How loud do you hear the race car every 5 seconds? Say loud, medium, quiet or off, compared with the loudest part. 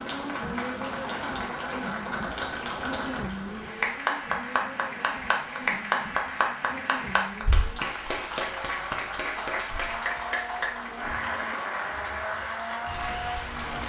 loud, medium, loud.